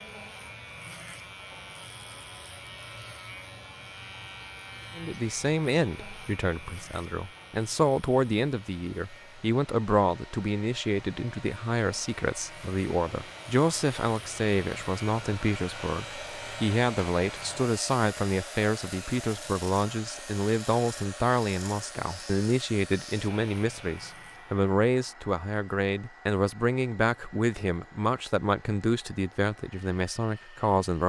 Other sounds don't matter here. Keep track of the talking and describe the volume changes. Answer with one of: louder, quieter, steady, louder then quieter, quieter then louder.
steady.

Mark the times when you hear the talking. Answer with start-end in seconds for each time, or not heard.
5.0-31.0.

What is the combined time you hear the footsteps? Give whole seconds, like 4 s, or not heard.
not heard.